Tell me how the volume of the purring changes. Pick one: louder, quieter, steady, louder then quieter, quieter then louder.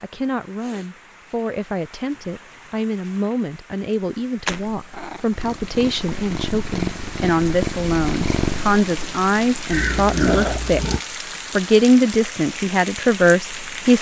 louder.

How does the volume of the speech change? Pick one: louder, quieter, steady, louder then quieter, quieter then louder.
louder.